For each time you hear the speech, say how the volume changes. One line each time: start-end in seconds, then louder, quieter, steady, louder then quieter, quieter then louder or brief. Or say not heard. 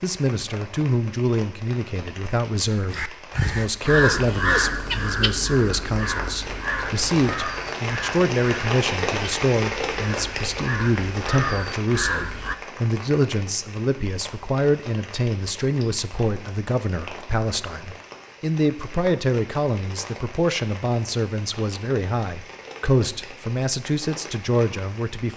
0.0-25.3 steady.